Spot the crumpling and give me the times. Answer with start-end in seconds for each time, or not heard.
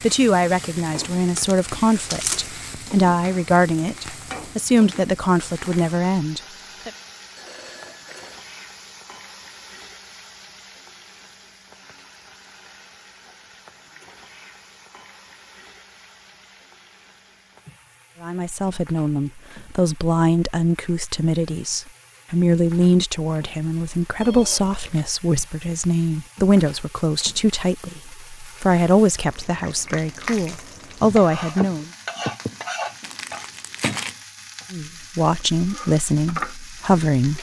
1.2-2.5, 33.0-34.1.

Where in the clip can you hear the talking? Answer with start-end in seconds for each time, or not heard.
0.0-6.9, 18.2-31.9, 34.7-37.3.